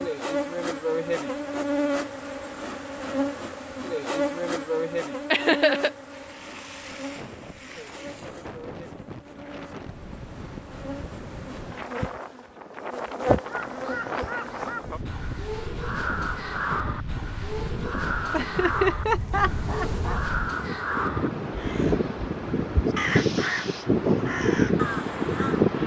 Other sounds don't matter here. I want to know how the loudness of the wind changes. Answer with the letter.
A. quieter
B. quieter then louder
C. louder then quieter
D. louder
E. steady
D.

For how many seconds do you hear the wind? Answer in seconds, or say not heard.
20 s.